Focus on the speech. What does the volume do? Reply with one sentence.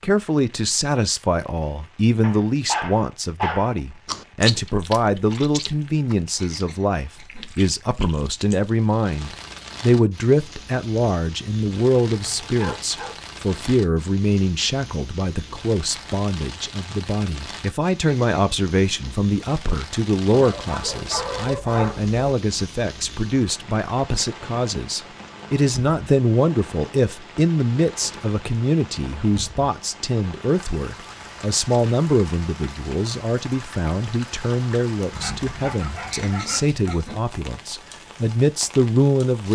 The loudness of the speech stays about the same.